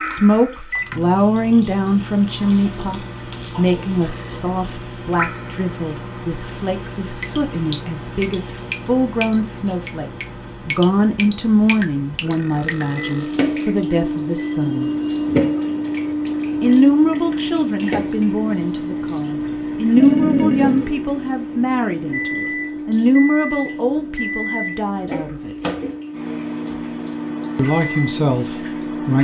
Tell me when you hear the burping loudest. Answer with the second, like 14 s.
20 s.